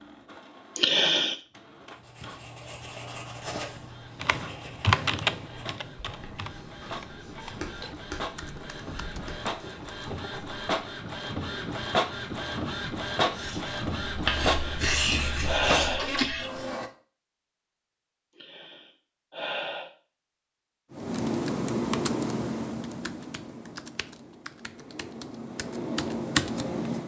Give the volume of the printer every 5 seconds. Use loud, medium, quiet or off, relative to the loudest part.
quiet, medium, loud, loud, off, off.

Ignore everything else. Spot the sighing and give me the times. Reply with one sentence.
The sighing can be heard from 0.8 to 1.4 s, from 14.4 to 16.2 s and from 18.3 to 19.9 s.